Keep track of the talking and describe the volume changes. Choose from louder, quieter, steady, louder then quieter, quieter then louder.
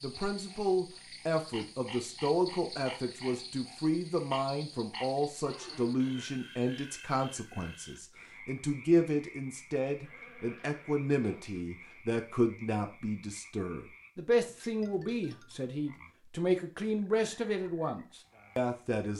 steady.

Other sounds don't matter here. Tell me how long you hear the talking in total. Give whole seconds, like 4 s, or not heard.
19 s.